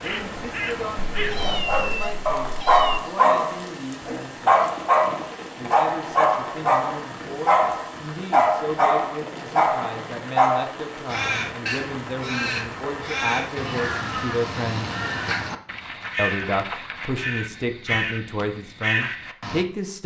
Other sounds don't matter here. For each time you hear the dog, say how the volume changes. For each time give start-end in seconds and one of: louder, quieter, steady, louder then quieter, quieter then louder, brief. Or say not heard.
1.4-10.7 steady.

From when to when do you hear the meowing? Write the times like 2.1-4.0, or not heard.
1.1-3.0.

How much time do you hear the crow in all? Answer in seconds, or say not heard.
10 s.